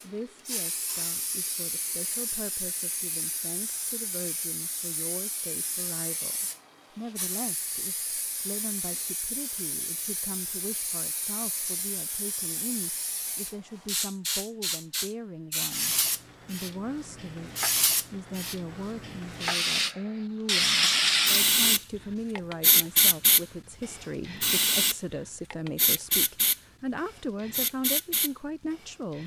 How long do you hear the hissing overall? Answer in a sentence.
You can hear the hissing for 29 seconds altogether.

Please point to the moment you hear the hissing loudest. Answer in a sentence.
The loudest moment of the hissing is at 21 seconds.